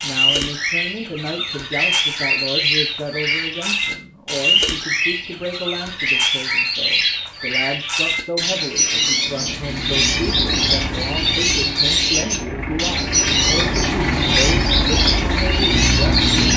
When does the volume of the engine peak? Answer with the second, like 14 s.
16 s.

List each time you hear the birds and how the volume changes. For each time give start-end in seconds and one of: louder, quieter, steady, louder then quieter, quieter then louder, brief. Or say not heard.
0.0-16.5 steady.